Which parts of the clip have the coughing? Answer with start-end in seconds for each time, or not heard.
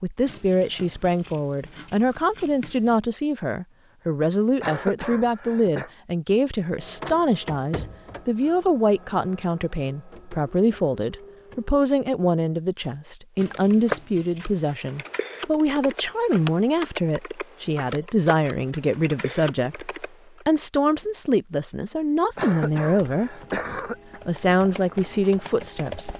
4.6-5.9, 22.4-24.2.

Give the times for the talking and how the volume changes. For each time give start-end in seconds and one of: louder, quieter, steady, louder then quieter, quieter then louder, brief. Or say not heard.
0.0-23.3 steady
24.2-26.1 brief.